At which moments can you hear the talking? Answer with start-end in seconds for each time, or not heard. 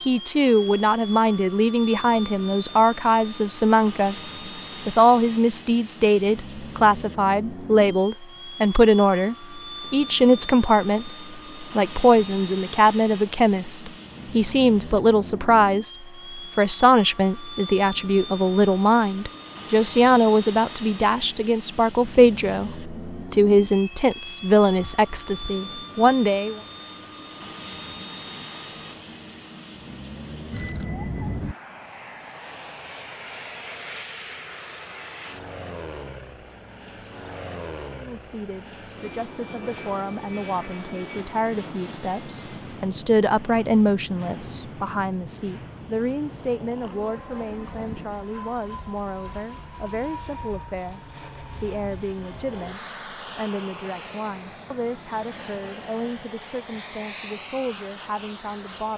0.1-26.6, 37.9-58.9.